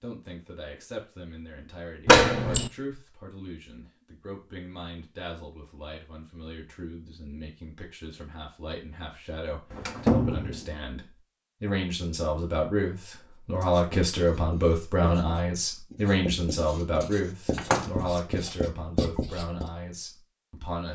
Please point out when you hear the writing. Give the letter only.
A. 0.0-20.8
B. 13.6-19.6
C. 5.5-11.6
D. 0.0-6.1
B.